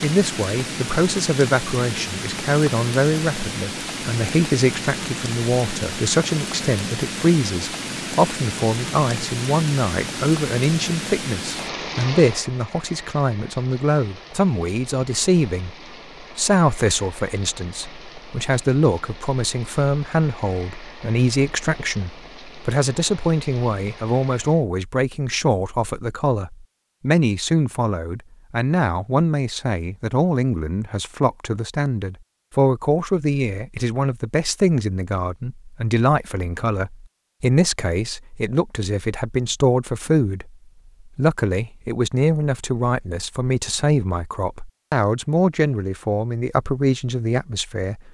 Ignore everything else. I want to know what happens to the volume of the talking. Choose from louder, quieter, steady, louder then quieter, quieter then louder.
steady.